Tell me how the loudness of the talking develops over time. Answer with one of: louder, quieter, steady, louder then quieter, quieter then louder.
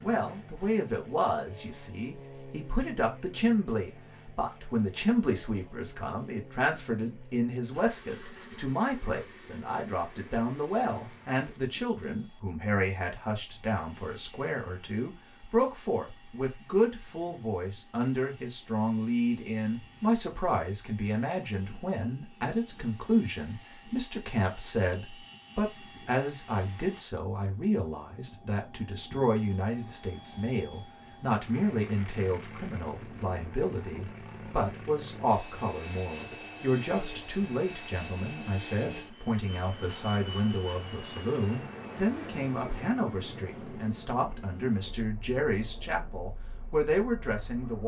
steady.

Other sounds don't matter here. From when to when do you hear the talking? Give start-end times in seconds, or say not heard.
0.0-47.8.